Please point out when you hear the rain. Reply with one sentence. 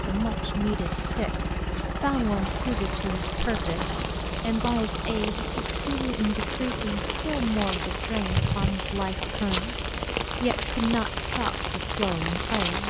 You can hear the rain from 2.4 to 12.8 s.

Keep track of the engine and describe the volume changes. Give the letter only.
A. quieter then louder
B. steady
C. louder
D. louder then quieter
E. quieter
E.